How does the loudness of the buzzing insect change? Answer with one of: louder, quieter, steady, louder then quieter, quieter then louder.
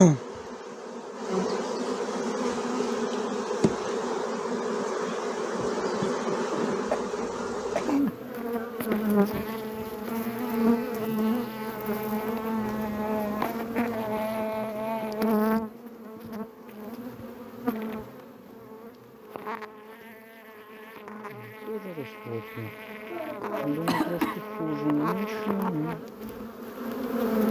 quieter then louder.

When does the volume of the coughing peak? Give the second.
24 s.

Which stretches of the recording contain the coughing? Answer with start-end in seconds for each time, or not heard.
6.8-8.1, 22.6-24.4.